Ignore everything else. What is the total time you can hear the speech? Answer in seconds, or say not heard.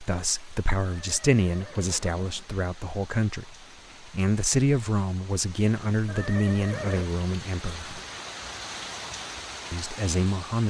9 s.